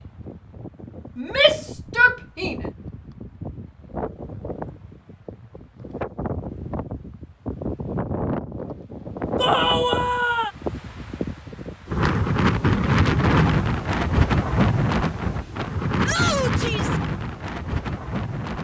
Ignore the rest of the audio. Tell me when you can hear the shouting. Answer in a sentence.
You can hear the shouting from 1.1 to 2.5 s, from 9.3 to 10.5 s and from 16.0 to 17.0 s.